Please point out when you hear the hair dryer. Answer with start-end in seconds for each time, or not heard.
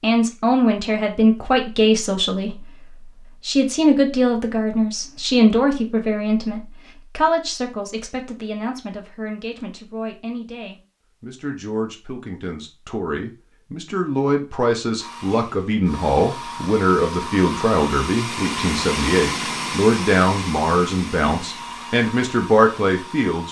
14.9-23.4.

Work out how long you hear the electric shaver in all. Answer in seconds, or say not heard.
not heard.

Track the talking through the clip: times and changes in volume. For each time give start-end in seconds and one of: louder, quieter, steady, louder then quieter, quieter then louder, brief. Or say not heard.
0.0-2.6 brief
3.4-23.4 quieter then louder.